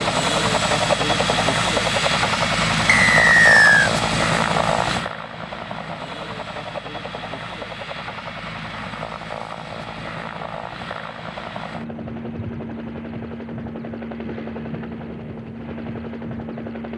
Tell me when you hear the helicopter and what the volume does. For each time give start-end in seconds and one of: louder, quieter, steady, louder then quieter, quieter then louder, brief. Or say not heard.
0.0-16.9 quieter.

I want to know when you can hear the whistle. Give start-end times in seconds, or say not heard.
2.9-3.9.